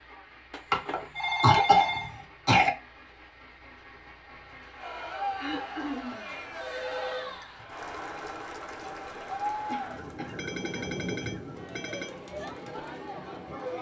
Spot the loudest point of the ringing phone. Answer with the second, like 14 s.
1 s.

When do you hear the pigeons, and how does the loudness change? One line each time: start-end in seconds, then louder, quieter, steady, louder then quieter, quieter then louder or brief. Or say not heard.
not heard.